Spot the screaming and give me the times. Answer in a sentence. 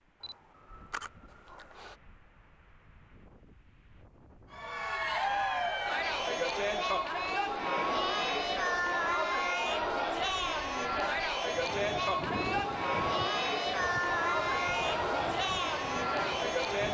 You can't hear the screaming here.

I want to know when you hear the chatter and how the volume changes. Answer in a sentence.
The chatter can be heard from 4.5 to 16.8 s, at a steady volume.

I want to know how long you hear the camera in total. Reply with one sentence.
The camera can be heard for 2 seconds in total.